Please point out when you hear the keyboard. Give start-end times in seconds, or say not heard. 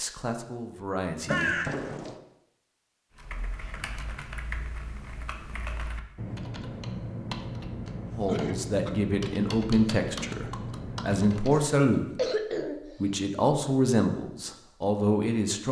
3.1-11.6.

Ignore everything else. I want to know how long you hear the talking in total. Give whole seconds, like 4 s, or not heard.
8 s.